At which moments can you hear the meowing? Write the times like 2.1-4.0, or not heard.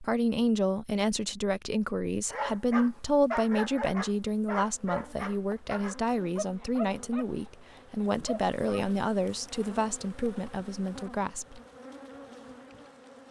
not heard.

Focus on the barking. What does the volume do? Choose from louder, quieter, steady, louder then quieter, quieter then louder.
quieter.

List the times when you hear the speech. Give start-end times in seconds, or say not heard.
0.0-11.6.